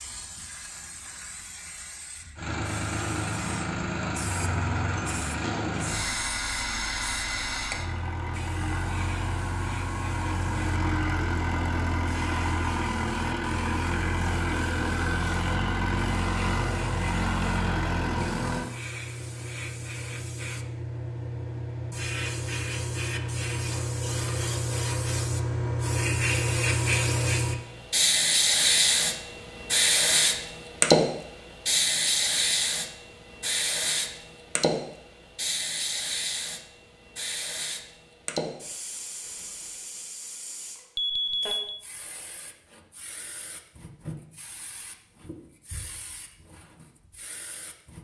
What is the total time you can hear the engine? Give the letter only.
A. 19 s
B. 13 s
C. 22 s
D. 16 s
D.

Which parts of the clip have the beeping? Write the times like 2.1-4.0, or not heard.
41.0-41.8.